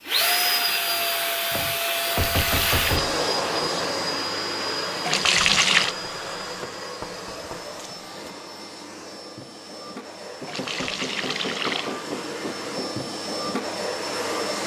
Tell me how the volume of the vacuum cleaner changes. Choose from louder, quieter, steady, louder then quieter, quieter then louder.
quieter then louder.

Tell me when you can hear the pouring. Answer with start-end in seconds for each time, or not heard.
2.2-3.1, 5.0-6.0, 10.4-11.9.